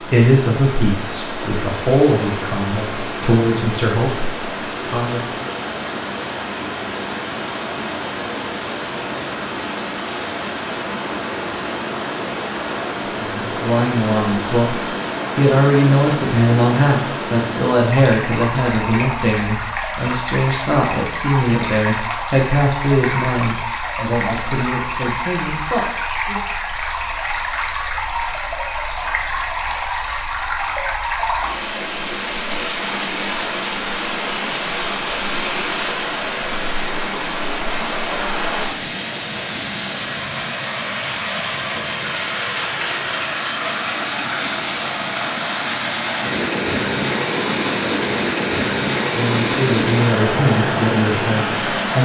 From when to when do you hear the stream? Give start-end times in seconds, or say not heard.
0.0-52.0.